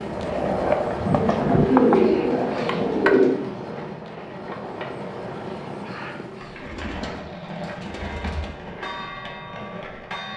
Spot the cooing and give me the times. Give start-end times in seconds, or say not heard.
1.1-3.4, 6.5-8.8.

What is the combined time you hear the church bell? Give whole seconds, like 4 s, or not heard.
2 s.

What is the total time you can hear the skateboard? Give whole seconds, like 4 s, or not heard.
10 s.